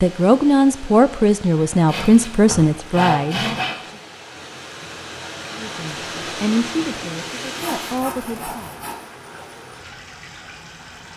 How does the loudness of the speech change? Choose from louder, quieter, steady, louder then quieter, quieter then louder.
quieter.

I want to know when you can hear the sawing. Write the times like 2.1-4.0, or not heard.
1.9-3.8, 7.5-9.1.